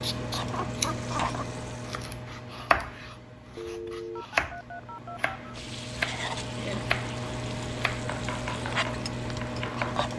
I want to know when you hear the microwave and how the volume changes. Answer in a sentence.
You can hear the microwave from 0.0 to 10.1 s, getting quieter then louder.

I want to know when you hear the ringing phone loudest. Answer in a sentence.
The loudest moment of the ringing phone is at 4 seconds.